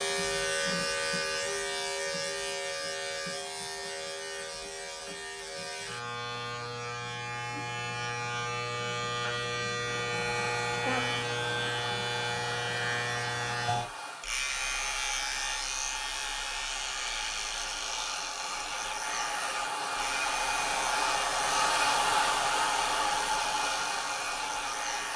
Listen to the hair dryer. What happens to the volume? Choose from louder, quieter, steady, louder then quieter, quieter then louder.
louder.